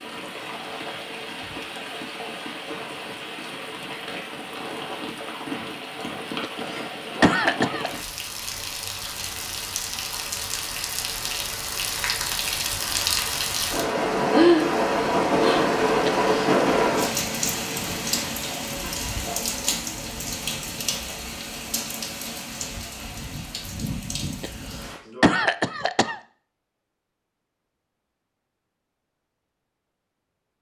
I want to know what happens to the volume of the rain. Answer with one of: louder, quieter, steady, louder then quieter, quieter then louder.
louder then quieter.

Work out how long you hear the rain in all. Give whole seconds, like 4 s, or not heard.
25 s.